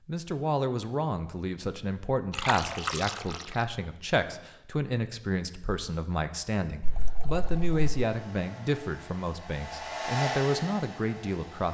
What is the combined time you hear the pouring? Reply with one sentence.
You can hear the pouring for 2 seconds altogether.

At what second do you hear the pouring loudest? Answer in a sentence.
The volume of the pouring peaks at 3 seconds.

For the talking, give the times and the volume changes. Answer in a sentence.
You can hear the talking from 0.1 to 11.6 s, at a steady volume.